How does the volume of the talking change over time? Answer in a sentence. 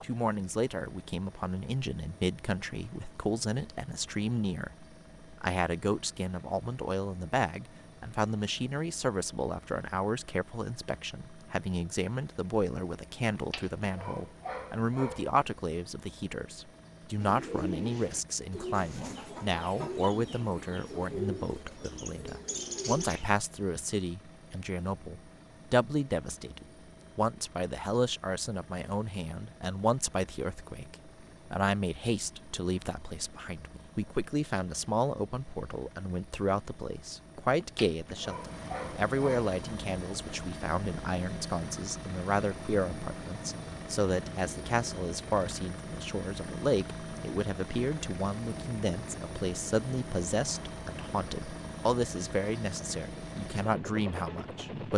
The loudness of the talking stays about the same.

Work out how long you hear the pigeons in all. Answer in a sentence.
The pigeons can be heard for 6 seconds in total.